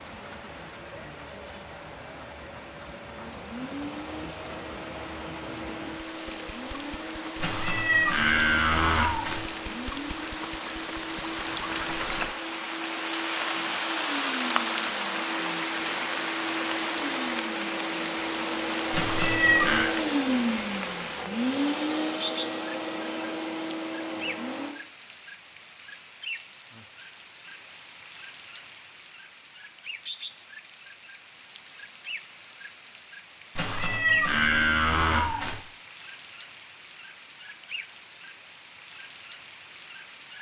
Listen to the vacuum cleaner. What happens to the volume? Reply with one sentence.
The loudness of the vacuum cleaner goes up.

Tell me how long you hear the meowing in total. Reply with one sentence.
The meowing can be heard for 5 seconds in total.